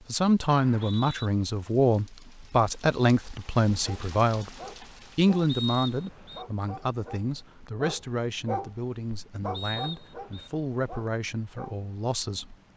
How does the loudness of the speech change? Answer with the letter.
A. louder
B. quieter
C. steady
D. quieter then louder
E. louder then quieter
B.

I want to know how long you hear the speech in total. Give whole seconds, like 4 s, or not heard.
12 s.